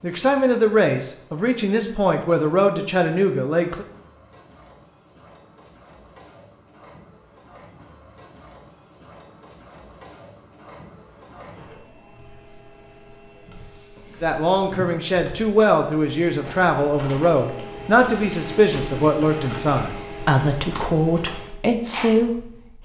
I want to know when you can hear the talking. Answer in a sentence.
You can hear the talking from 0.0 to 3.9 s and from 14.2 to 22.8 s.